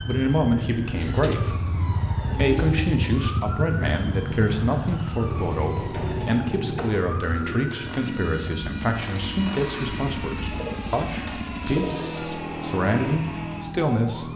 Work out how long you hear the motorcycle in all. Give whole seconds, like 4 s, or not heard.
14 s.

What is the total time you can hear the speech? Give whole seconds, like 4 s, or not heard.
14 s.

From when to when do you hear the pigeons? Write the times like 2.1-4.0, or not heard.
0.9-2.9, 5.2-8.0, 10.5-12.4.